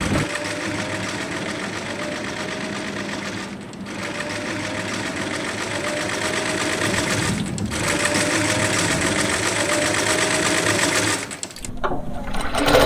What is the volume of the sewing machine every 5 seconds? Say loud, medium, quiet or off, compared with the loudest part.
medium, loud, loud.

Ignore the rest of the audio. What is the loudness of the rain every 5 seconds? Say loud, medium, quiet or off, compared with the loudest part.
loud, loud, medium.